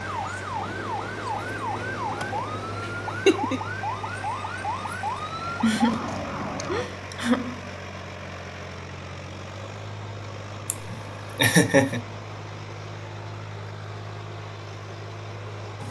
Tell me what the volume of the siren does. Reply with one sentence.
The volume of the siren stays about the same.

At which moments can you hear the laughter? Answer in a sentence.
You can hear the laughter from 2.2 to 3.6 s, from 5.6 to 7.8 s and from 10.7 to 12.0 s.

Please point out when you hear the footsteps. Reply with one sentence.
You can't hear the footsteps here.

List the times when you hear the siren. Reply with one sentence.
The siren can be heard from 0.0 to 6.9 s.